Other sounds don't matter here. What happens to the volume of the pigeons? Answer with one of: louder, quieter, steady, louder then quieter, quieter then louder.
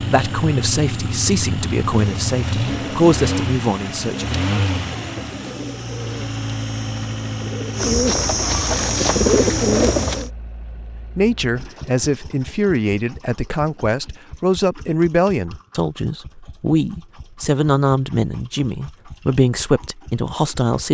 louder.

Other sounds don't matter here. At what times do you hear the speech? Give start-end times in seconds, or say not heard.
0.0-4.5, 11.2-20.8.